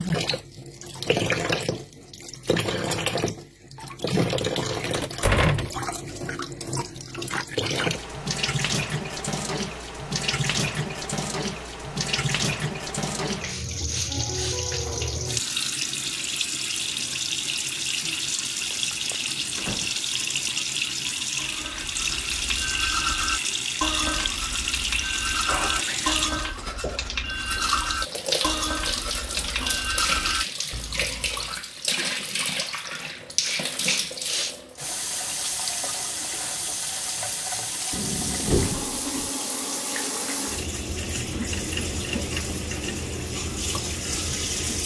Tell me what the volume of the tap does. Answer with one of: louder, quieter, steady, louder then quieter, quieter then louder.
steady.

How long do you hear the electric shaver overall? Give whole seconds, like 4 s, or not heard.
not heard.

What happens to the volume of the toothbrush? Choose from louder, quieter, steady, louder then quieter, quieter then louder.
steady.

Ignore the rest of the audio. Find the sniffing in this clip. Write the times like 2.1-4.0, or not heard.
13.4-14.6, 33.4-34.5.